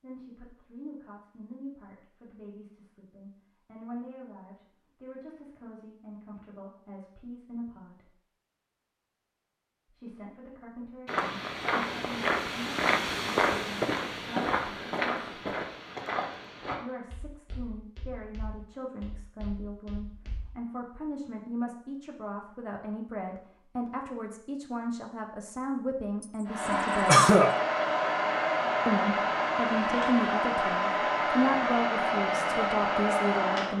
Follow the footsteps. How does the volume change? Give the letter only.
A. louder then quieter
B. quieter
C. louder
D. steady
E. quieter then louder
B.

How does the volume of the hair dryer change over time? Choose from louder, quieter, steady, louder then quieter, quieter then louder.
steady.